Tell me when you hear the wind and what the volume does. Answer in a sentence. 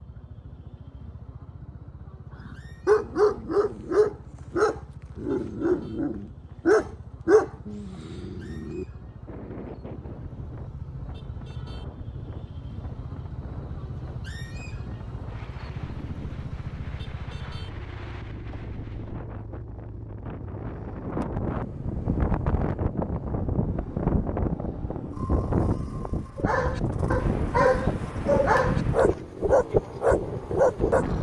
The wind can be heard from 9.2 to 31.1 s, getting louder.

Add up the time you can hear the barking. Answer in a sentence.
The barking can be heard for 11 seconds in total.